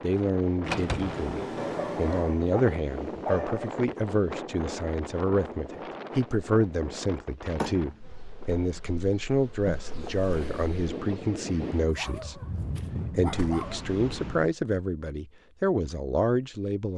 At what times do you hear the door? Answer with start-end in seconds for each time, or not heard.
0.6-2.4, 7.5-8.3, 13.2-13.7.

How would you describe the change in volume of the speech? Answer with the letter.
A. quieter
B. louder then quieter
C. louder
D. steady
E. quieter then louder
D.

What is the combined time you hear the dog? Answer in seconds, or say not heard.
4 s.